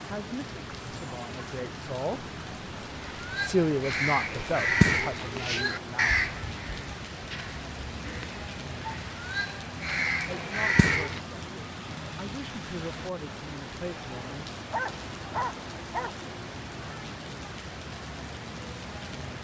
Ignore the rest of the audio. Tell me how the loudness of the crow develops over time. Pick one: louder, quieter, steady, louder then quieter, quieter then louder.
quieter then louder.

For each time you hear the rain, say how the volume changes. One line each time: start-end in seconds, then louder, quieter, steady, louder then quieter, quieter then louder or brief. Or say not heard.
0.0-19.3 steady.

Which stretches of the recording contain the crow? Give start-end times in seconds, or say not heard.
3.0-11.2.